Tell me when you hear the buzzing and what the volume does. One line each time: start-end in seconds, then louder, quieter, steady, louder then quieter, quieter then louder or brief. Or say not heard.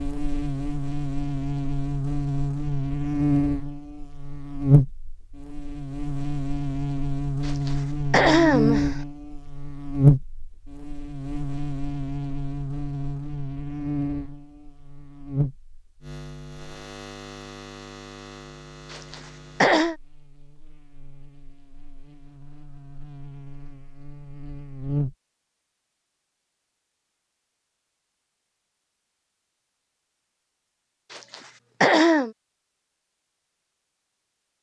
0.0-25.1 quieter.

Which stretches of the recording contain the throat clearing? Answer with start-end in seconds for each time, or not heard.
7.5-8.9, 18.9-19.9, 31.1-32.3.